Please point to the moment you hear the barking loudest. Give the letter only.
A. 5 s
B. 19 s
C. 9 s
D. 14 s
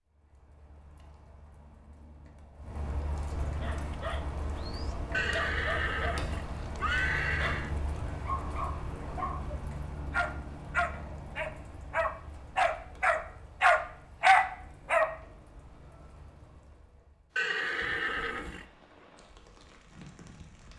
D.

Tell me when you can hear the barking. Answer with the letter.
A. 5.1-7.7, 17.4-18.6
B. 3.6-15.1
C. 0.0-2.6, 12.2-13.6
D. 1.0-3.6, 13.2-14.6
B.